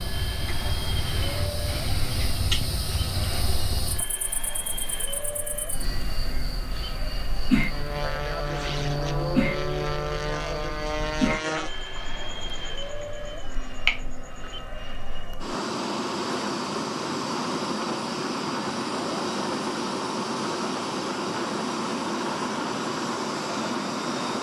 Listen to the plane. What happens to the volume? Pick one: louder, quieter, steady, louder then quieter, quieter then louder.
louder.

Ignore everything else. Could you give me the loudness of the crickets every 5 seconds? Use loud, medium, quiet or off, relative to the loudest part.
loud, loud, loud, off, off.